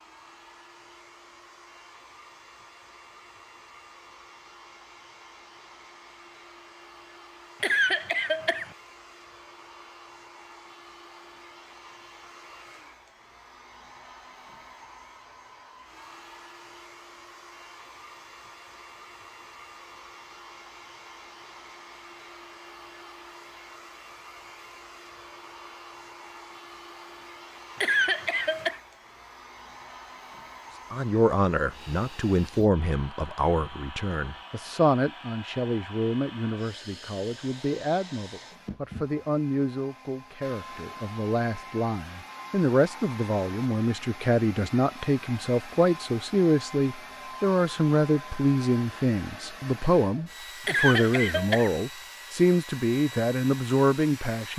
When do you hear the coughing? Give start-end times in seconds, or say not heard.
7.6-8.7, 27.8-28.8, 50.6-51.8.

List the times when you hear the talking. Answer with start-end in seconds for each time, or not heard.
30.9-54.5.